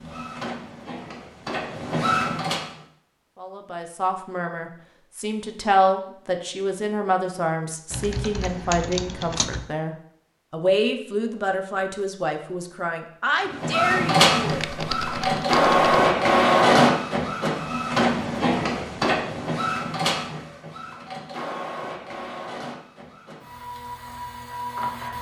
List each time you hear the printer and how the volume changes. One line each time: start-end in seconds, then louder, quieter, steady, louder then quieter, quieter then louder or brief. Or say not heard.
0.0-2.9 brief
13.4-25.1 quieter.